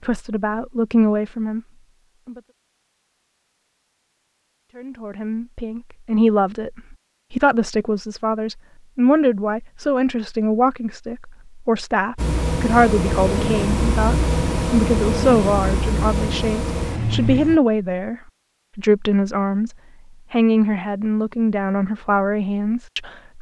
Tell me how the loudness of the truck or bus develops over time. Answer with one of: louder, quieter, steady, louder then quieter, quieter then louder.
steady.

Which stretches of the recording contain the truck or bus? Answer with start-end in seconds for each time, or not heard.
12.2-17.6.